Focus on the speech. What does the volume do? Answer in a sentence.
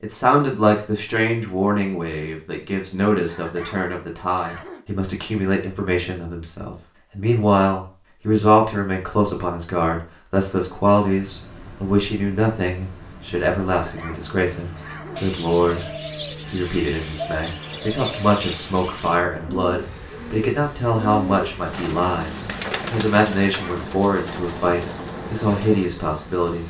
The loudness of the speech stays about the same.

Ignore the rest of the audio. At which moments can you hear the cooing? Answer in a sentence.
You can hear the cooing from 14.9 to 25.9 s.